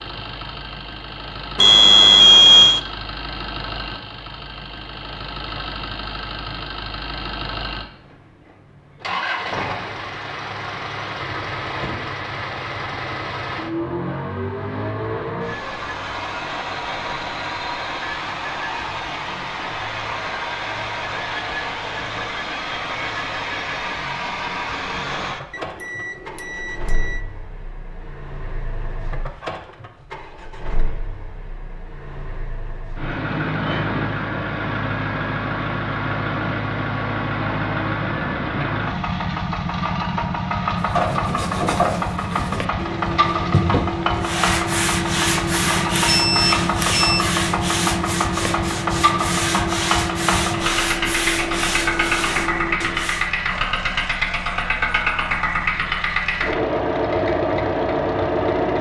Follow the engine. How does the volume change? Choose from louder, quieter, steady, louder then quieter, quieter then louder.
louder.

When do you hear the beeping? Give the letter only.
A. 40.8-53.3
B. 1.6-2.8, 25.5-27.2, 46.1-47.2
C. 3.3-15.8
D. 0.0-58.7
B.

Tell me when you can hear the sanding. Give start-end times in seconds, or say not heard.
40.8-53.3.